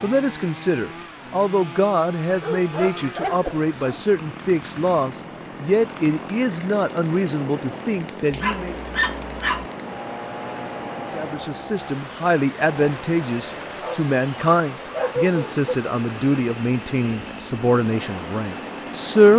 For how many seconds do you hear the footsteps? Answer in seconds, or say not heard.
not heard.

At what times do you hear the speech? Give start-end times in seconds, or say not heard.
0.0-8.8, 11.1-19.3.